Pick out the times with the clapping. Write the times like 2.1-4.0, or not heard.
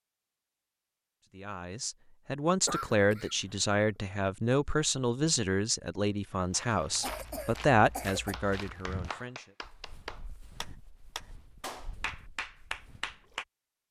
8.3-13.4.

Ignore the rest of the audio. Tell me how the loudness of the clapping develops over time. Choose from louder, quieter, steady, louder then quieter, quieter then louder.
louder.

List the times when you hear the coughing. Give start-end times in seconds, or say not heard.
2.6-3.8, 7.0-8.3.